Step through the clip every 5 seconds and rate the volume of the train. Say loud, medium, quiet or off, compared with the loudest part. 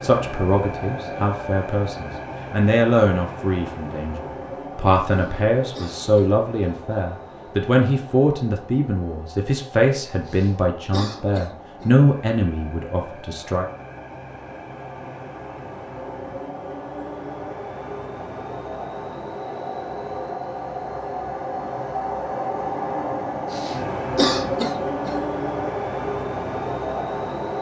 medium, quiet, quiet, medium, loud, loud.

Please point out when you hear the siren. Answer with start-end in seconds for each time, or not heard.
not heard.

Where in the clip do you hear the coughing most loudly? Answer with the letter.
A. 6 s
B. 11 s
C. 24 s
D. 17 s
C.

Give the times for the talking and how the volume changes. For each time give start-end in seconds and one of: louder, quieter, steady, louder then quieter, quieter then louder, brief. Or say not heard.
0.0-13.7 steady.